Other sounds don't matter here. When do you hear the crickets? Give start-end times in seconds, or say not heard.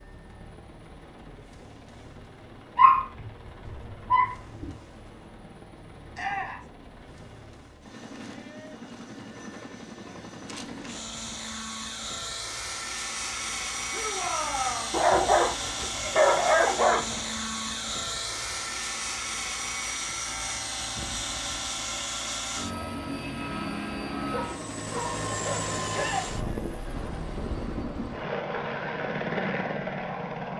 not heard.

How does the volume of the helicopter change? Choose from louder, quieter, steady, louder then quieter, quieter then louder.
louder.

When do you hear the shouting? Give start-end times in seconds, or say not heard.
6.1-6.7, 13.9-15.0, 25.9-26.3.